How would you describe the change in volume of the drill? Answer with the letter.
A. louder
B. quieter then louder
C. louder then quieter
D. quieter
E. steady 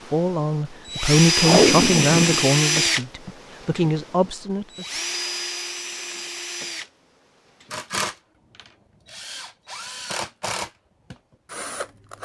D.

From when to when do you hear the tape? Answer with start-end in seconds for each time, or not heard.
1.4-3.3.